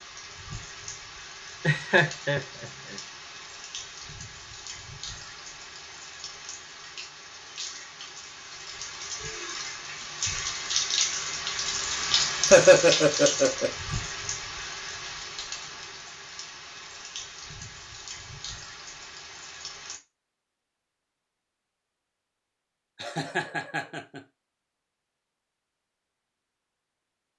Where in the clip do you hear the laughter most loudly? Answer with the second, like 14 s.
13 s.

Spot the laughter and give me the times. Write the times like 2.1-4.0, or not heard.
1.6-2.6, 12.5-13.7, 23.0-24.2.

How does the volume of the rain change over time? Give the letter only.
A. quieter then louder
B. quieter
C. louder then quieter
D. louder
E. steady
C.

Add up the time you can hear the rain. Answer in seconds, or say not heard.
20 s.